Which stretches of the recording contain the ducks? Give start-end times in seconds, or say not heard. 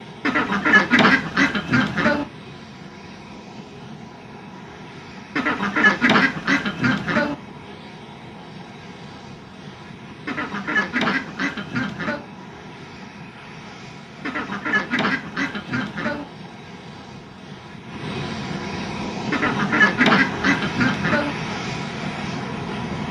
0.2-2.2, 5.3-7.3, 10.2-12.2, 14.2-16.2, 19.3-21.4.